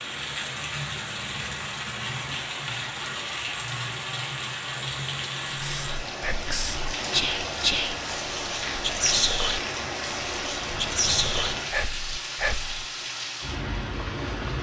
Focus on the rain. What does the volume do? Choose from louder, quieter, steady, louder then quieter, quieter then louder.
steady.